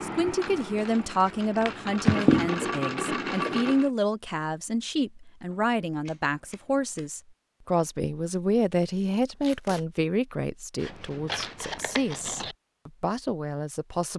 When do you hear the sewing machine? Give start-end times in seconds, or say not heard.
0.0-3.9.